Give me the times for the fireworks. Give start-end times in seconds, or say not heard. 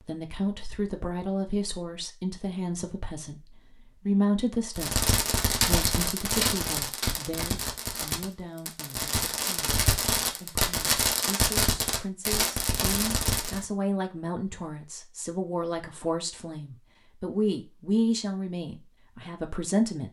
4.8-13.7.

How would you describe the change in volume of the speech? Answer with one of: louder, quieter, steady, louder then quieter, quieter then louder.
quieter then louder.